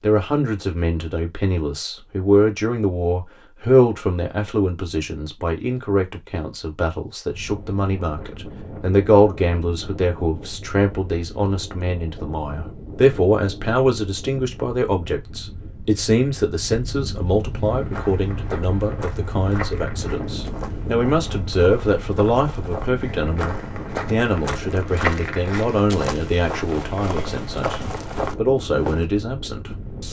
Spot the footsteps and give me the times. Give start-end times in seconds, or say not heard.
17.6-29.1.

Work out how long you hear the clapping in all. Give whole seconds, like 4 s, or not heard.
not heard.